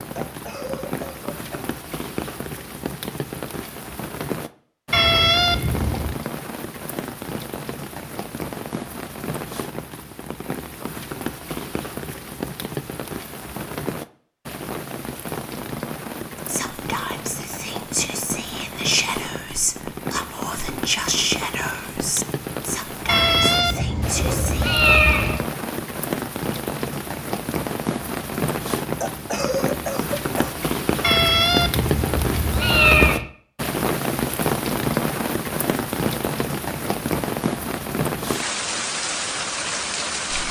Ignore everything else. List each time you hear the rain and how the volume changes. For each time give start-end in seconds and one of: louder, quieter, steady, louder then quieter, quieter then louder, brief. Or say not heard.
0.0-40.4 louder.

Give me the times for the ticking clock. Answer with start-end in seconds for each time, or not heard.
not heard.